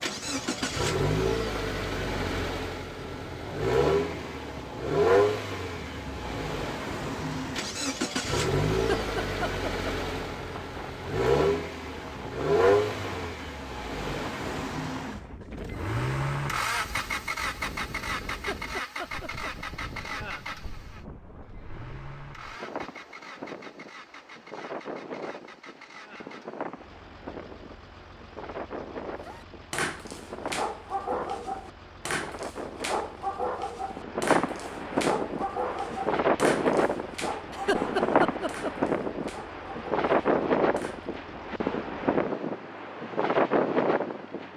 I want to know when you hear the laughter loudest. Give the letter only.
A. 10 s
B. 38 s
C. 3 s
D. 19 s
B.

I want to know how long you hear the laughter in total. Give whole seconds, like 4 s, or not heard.
4 s.